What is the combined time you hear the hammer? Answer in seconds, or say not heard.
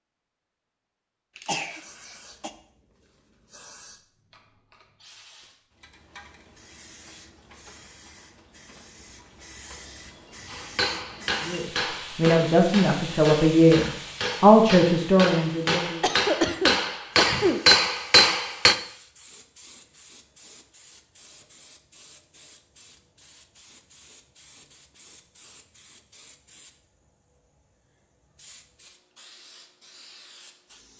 8 s.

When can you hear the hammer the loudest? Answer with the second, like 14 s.
18 s.